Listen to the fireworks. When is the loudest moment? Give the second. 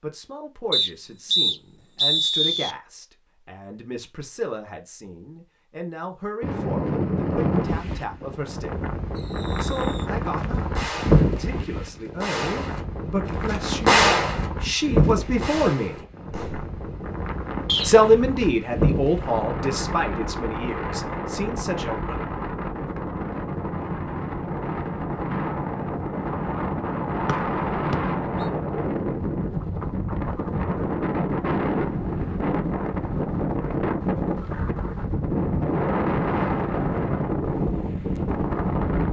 14 s.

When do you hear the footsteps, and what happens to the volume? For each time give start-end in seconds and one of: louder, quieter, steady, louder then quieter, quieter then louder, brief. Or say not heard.
not heard.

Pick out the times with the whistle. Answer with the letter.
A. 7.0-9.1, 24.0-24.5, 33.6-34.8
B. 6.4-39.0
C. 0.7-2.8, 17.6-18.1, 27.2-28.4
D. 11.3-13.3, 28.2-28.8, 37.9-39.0
C.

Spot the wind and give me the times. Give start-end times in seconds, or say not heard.
6.4-39.0.